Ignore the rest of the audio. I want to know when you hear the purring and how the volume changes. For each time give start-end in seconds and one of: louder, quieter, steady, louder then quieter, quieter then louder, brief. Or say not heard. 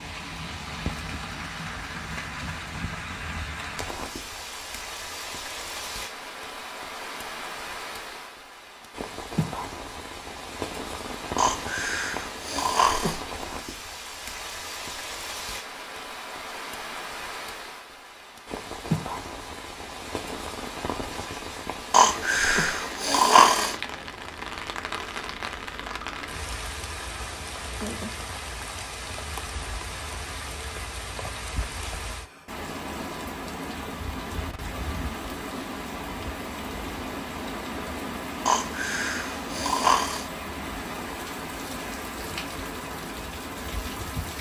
not heard.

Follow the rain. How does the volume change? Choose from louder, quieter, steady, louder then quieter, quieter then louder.
steady.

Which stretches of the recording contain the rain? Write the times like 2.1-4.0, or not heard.
0.0-44.3.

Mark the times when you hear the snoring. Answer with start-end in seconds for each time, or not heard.
11.3-13.2, 21.9-23.8, 38.5-40.2.